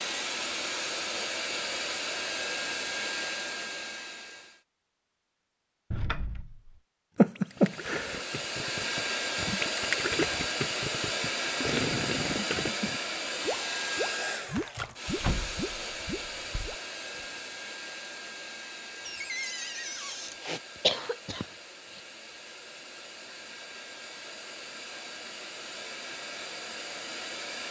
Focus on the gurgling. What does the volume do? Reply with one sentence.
The loudness of the gurgling goes up, then down.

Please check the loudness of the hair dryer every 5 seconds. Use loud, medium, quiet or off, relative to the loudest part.
loud, loud, loud, medium, quiet, medium.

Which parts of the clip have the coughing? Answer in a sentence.
You can hear the coughing from 7.2 to 8.2 s and from 20.4 to 22.0 s.